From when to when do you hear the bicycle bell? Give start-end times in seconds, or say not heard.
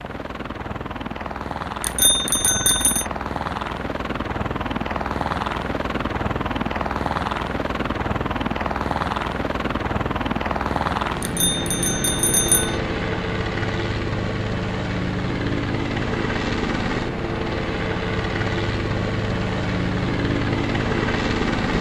1.8-3.0, 11.2-12.8.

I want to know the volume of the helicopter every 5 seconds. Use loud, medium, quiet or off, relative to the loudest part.
medium, loud, loud, loud, loud.